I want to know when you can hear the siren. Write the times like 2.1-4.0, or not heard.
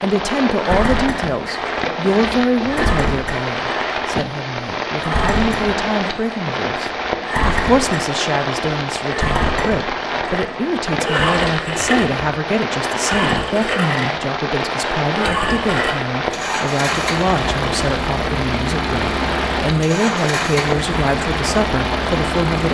not heard.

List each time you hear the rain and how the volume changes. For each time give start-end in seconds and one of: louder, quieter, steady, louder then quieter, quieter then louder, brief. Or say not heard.
0.0-22.6 steady.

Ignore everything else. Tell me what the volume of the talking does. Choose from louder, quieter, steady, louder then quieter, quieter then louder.
steady.